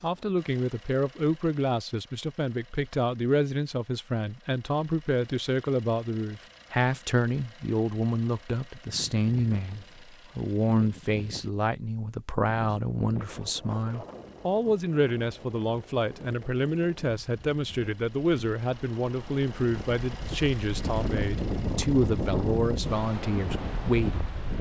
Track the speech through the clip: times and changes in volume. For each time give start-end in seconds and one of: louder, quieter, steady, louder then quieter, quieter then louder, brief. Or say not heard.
0.0-24.5 steady.